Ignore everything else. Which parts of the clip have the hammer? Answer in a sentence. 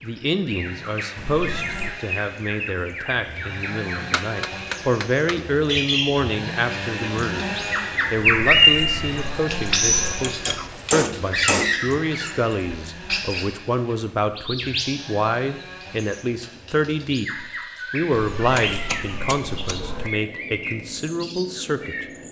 The hammer can be heard from 4.0 to 5.5 s, from 10.2 to 11.8 s and from 18.6 to 19.9 s.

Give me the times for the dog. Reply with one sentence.
You can't hear the dog here.